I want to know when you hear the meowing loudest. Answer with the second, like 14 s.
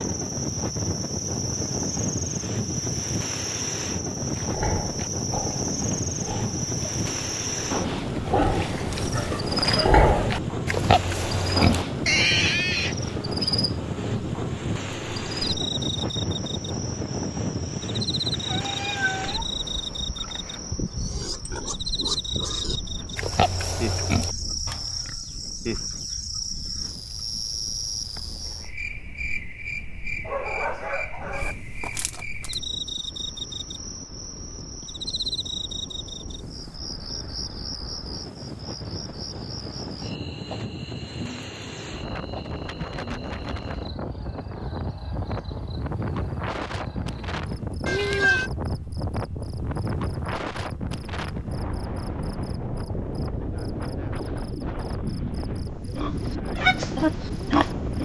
48 s.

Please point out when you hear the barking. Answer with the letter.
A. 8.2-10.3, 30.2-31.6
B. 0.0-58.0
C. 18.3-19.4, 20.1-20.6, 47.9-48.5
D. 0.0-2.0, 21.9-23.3
A.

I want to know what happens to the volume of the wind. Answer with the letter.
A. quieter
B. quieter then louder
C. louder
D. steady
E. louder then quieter
B.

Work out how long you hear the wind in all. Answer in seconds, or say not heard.
58 s.